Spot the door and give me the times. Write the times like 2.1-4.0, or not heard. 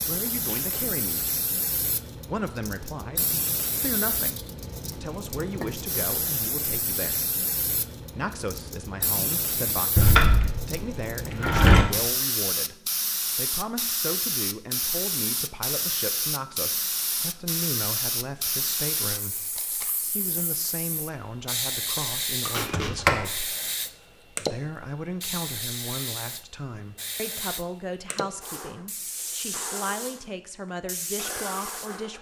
9.9-11.8, 22.6-23.2.